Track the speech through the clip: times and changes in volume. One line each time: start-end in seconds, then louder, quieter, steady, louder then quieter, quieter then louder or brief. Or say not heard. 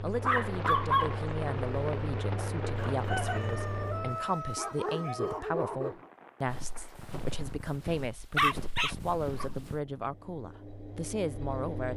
0.0-11.9 steady.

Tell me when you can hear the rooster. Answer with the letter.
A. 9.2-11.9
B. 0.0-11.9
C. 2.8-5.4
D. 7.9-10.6
C.